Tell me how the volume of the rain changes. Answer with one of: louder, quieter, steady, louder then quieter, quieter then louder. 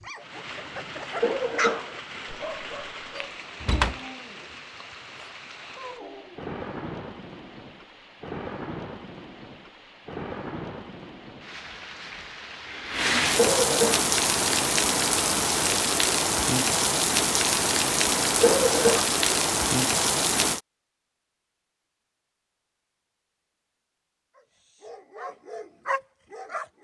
louder.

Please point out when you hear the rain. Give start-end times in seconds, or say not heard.
0.0-20.6.